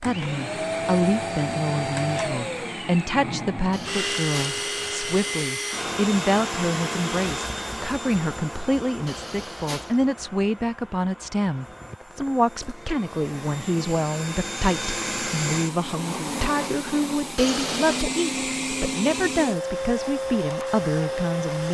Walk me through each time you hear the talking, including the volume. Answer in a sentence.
You can hear the talking from 0.0 to 21.6 s, at a steady volume.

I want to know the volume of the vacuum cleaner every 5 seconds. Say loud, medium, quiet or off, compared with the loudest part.
loud, loud, medium, loud, loud.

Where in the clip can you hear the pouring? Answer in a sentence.
You can hear the pouring from 3.7 to 5.5 s, from 9.1 to 10.0 s and from 17.4 to 18.1 s.